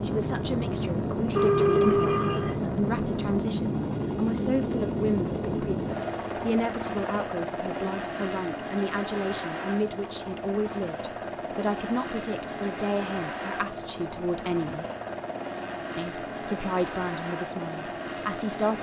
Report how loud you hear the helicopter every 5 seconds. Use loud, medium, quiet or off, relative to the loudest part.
loud, loud, medium, medium.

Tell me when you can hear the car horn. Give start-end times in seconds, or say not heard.
1.3-2.6.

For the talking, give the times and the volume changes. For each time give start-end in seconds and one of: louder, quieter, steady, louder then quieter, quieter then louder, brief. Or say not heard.
0.0-14.8 steady
15.9-18.7 brief.